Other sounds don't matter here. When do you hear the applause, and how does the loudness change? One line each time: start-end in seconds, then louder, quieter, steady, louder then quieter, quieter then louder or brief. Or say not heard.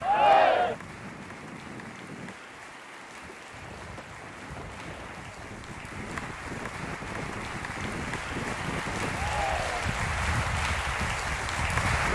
0.0-12.0 louder.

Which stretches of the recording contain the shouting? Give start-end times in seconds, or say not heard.
0.0-0.8, 9.1-9.9.